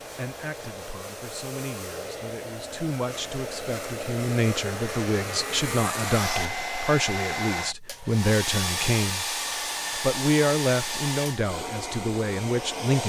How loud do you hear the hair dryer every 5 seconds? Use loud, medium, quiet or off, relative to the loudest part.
medium, loud, loud.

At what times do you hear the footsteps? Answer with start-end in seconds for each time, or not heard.
not heard.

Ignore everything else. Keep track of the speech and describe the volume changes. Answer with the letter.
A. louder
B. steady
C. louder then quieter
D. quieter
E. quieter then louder
A.